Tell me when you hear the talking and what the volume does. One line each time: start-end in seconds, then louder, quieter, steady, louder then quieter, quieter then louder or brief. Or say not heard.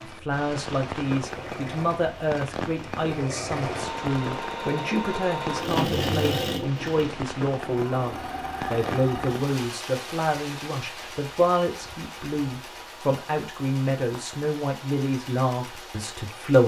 0.0-16.6 steady.